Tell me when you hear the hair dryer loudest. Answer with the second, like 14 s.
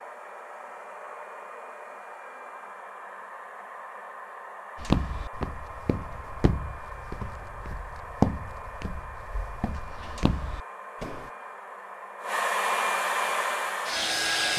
13 s.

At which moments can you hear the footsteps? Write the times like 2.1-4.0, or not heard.
4.8-11.3.